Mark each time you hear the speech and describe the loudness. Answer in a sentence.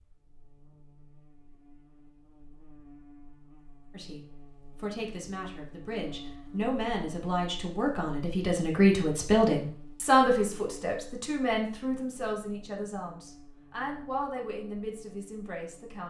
The speech can be heard from 3.9 to 16.0 s, getting louder then quieter.